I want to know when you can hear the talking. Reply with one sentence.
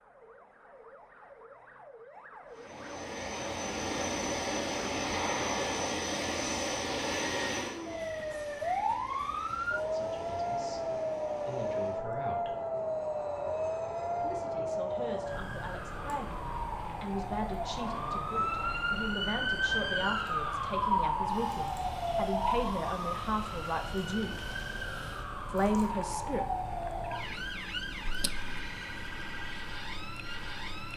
You can hear the talking from 9.8 to 12.6 s, from 14.2 to 24.4 s and from 25.5 to 26.4 s.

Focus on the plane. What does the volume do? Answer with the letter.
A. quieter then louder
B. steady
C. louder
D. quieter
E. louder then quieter
D.